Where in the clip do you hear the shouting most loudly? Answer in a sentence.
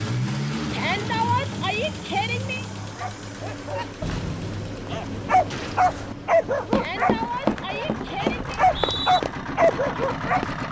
The loudest moment of the shouting is at 1 second.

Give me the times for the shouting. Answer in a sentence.
The shouting can be heard from 0.7 to 2.6 s and from 6.7 to 8.6 s.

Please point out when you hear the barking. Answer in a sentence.
You can hear the barking from 3.0 to 10.4 s.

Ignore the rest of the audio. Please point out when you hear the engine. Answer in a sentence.
You can hear the engine from 0.0 to 10.6 s.